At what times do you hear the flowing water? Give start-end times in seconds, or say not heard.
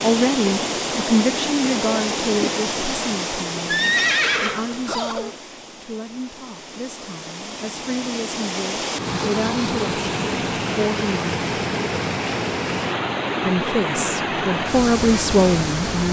0.0-16.0.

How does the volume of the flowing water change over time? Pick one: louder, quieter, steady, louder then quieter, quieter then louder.
quieter then louder.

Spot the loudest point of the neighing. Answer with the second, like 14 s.
4 s.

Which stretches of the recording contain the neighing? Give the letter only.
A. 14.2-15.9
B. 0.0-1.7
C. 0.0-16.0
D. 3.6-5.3
D.